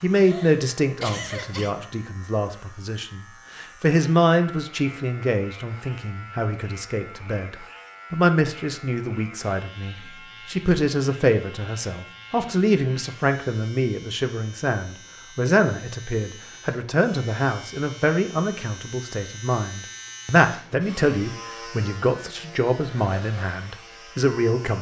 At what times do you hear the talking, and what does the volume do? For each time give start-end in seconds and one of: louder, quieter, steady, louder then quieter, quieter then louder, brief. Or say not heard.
0.0-24.7 steady.